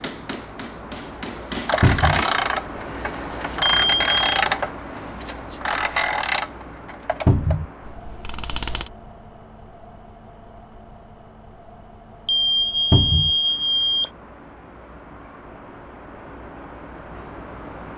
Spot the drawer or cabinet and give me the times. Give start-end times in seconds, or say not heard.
1.8-2.2, 7.2-7.7, 12.9-13.3.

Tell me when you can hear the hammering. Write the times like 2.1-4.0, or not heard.
0.0-2.5.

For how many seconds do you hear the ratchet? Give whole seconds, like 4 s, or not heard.
7 s.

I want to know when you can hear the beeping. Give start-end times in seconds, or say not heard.
3.6-4.2, 12.2-14.1.